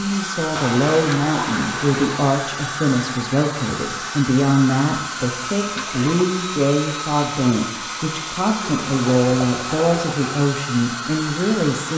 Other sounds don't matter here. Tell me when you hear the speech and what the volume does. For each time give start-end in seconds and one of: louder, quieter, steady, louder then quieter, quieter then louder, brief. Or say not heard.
0.0-11.9 steady.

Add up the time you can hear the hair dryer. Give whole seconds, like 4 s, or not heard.
12 s.